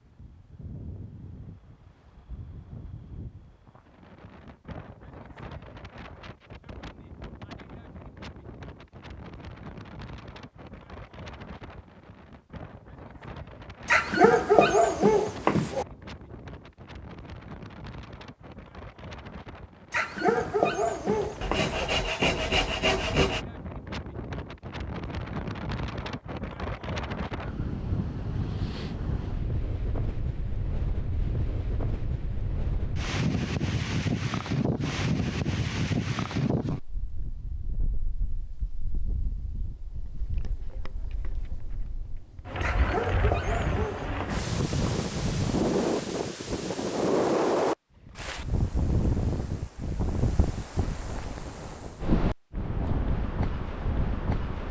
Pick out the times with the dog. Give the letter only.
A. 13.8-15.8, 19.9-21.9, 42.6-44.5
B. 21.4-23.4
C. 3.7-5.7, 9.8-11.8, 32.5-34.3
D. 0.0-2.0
A.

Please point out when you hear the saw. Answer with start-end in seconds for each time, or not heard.
21.4-23.4.